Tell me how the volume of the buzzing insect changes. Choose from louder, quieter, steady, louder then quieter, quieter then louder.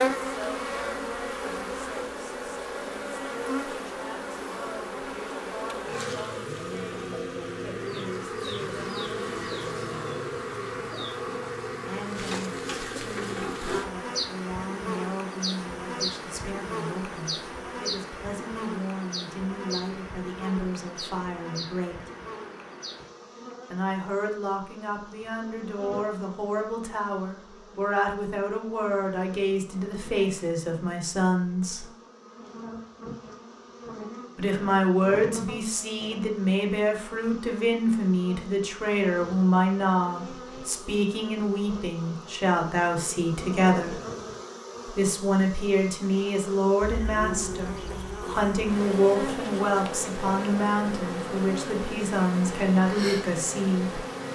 quieter then louder.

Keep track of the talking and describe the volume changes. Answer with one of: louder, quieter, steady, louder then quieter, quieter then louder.
louder.